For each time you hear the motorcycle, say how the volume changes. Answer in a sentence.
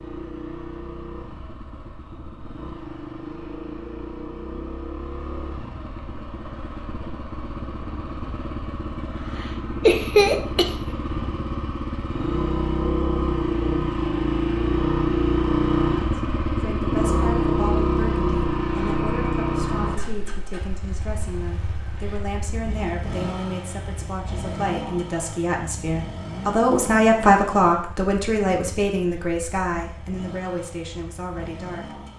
The motorcycle can be heard from 0.0 to 32.1 s, getting louder then quieter.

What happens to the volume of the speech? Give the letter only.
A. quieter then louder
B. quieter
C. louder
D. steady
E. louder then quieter
E.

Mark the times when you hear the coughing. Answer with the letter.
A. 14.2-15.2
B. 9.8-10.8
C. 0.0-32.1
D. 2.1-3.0
B.